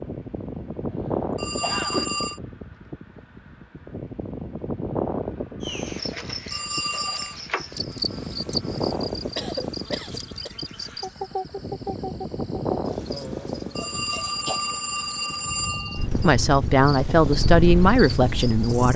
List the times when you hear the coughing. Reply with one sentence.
The coughing can be heard from 0.9 to 2.1 s, from 9.3 to 10.5 s and from 13.1 to 14.7 s.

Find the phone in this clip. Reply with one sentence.
The phone can be heard from 1.4 to 2.4 s, from 6.5 to 7.4 s and from 13.8 to 16.2 s.